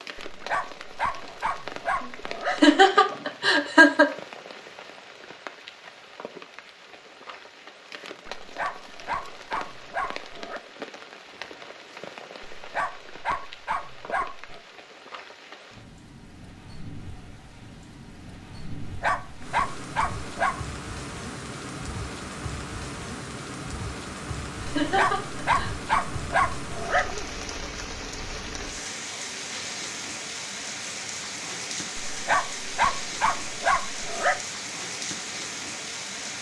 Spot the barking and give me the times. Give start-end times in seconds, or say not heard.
0.3-2.8, 8.3-10.6, 12.4-14.6, 18.9-20.6, 24.8-27.3, 32.0-34.4.